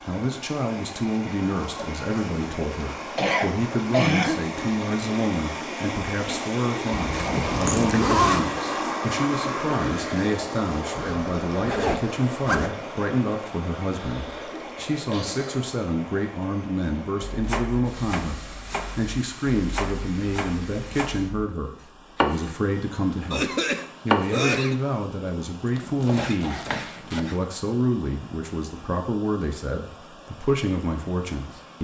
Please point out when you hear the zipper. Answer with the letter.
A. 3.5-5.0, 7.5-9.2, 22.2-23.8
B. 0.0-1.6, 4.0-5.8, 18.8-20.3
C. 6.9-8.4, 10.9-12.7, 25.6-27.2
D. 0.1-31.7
C.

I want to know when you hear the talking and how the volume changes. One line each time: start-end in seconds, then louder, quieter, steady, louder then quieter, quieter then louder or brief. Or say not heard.
0.1-31.7 steady.